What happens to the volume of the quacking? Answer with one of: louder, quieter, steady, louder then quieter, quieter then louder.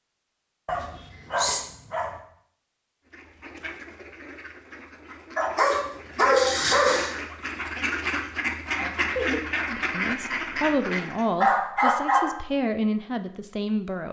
louder.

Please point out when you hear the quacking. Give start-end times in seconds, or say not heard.
3.1-11.2.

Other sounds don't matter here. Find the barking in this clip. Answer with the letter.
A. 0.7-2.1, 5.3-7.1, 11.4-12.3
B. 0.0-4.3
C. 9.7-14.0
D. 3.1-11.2
A.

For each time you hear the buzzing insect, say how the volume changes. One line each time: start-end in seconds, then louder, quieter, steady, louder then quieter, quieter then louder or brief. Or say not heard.
not heard.